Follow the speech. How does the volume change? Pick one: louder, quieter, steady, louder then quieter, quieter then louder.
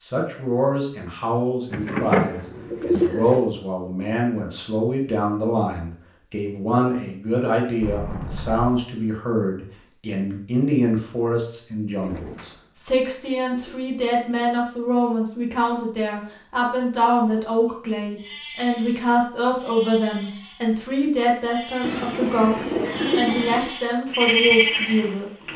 steady.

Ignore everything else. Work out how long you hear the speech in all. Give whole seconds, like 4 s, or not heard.
25 s.